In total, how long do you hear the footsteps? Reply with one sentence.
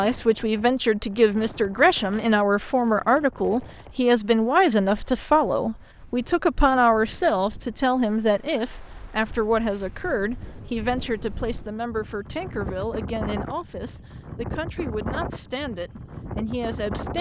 The footsteps can't be heard in this clip.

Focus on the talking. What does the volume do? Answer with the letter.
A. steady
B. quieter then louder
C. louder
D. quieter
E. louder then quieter
D.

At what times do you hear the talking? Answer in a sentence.
You can hear the talking from 0.0 to 17.1 s.